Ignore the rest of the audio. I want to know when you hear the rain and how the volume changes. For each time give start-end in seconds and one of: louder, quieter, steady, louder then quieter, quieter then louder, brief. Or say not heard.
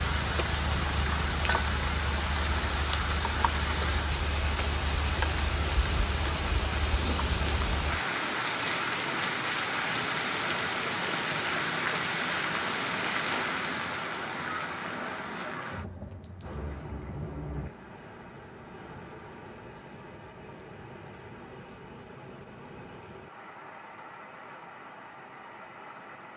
0.0-26.3 quieter.